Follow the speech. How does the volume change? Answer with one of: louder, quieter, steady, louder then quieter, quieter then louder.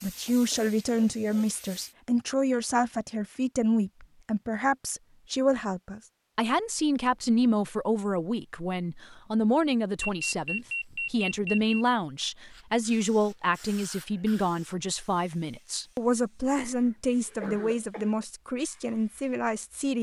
steady.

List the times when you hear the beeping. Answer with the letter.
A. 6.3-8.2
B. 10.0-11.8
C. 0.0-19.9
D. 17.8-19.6
B.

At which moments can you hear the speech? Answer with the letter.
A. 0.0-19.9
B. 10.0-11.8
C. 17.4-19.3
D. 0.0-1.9
A.